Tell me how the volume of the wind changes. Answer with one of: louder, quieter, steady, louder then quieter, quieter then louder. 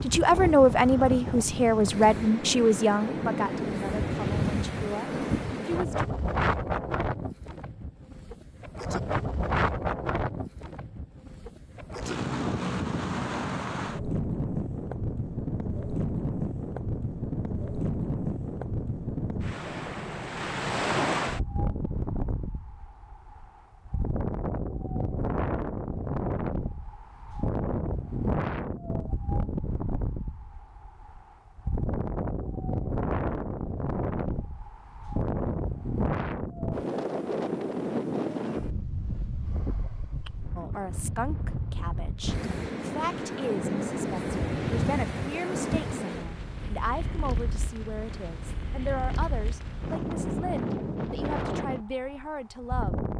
steady.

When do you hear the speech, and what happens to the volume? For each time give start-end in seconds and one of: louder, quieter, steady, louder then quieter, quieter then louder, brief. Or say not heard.
0.0-6.0 quieter
40.5-53.0 steady.